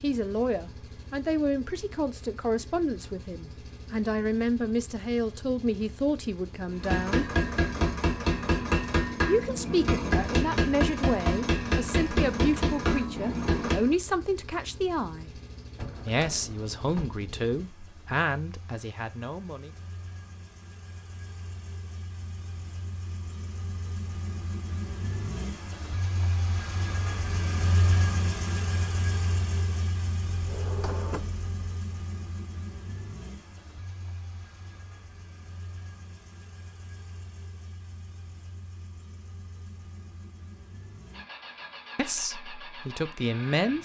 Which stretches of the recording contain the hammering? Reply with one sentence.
You can hear the hammering from 6.7 to 13.9 s.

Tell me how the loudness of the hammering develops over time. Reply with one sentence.
The loudness of the hammering stays about the same.